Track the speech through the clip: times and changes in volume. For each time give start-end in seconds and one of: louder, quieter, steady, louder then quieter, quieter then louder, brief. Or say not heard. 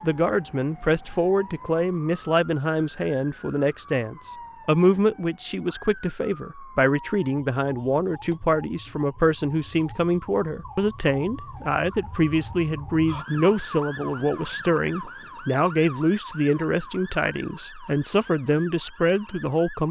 0.0-19.8 steady.